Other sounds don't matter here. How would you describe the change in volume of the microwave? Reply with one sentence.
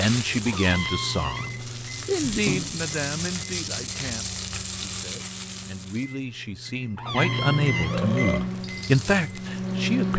The volume of the microwave goes down, then up.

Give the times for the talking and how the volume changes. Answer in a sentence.
The talking can be heard from 0.0 to 10.1 s, getting quieter then louder.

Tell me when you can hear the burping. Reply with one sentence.
The burping can be heard from 2.2 to 2.8 s and from 7.9 to 8.4 s.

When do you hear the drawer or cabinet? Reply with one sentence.
The drawer or cabinet can be heard from 0.5 to 1.6 s and from 7.0 to 8.1 s.